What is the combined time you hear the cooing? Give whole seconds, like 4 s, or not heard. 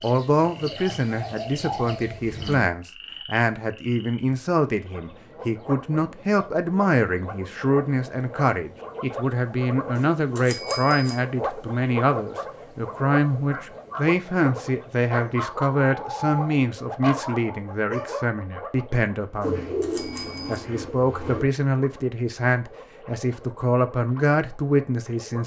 5 s.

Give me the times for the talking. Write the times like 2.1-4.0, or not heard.
0.0-19.7, 20.4-25.4.